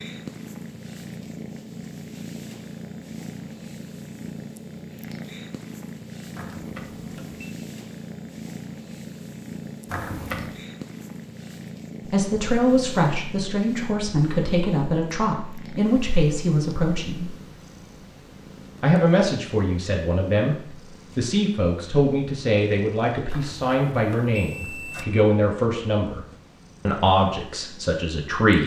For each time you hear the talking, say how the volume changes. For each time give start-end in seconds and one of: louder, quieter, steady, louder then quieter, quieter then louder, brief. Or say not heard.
12.1-17.3 steady
18.8-26.2 steady
26.9-28.6 brief.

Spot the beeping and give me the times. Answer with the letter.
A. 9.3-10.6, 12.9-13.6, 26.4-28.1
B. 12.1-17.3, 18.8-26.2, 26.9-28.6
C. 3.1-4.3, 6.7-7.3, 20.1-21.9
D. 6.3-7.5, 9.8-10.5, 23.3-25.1
D.